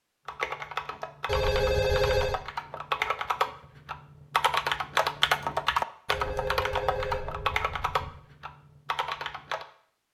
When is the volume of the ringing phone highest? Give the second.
2 s.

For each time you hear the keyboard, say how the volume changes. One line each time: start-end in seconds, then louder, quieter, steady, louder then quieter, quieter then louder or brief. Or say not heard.
0.2-9.7 louder then quieter.